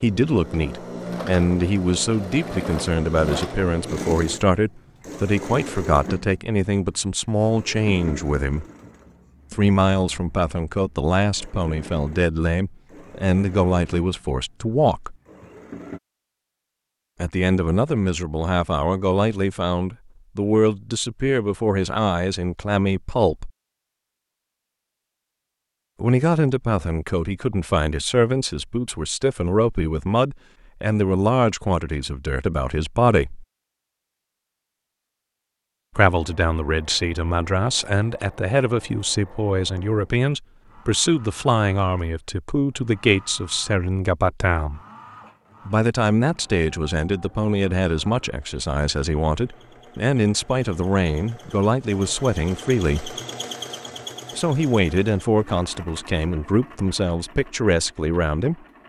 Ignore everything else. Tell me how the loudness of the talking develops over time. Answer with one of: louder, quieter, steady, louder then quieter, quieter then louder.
steady.